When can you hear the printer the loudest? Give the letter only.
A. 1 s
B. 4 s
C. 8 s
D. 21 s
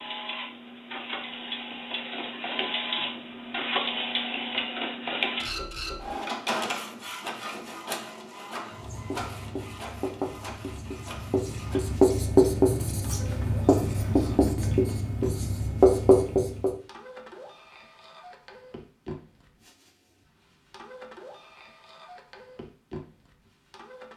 B.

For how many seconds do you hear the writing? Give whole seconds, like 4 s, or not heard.
8 s.